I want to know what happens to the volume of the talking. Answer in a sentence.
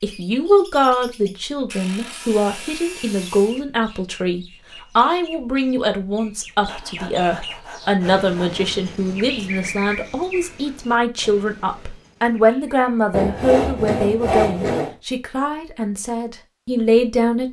The volume of the talking stays about the same.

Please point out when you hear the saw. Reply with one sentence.
The saw can be heard from 1.7 to 3.6 s, from 6.7 to 8.7 s and from 13.1 to 14.9 s.